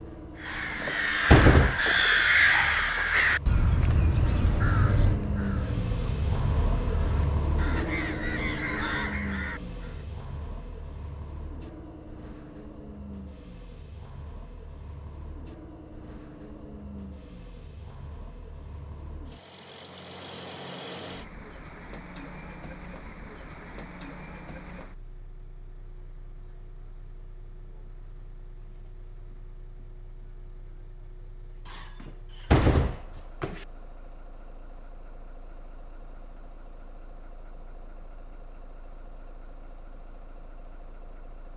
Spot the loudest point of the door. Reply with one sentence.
The loudest moment of the door is at 1 second.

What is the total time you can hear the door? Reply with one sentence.
You can hear the door for 3 seconds altogether.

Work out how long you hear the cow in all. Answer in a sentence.
You can't hear the cow here.